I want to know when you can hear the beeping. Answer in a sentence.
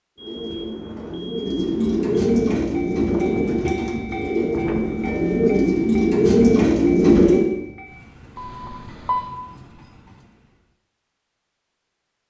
The beeping can be heard from 0.1 to 2.2 s, from 4.8 to 5.6 s and from 8.3 to 9.4 s.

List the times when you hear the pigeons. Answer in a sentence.
You can hear the pigeons from 0.1 to 7.5 s.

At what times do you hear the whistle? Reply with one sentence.
The whistle can't be heard in this clip.